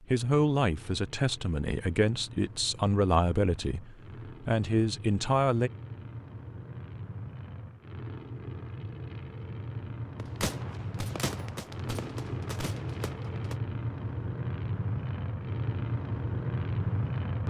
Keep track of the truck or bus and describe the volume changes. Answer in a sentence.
The volume of the truck or bus goes up.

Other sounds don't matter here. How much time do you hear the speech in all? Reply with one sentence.
The speech can be heard for 6 seconds in total.